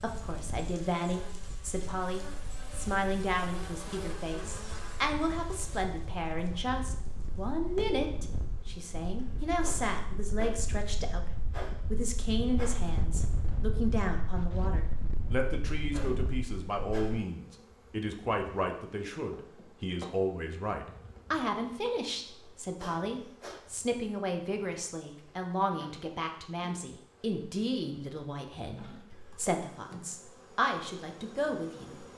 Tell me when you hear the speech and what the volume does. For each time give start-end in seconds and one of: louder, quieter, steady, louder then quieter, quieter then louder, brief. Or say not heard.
0.0-32.0 steady.